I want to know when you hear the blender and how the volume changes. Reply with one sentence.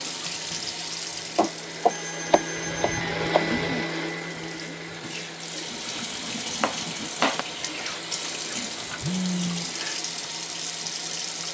You can hear the blender from 0.0 to 11.5 s, getting louder then quieter.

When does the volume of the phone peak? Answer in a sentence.
The loudest moment of the phone is at 9 seconds.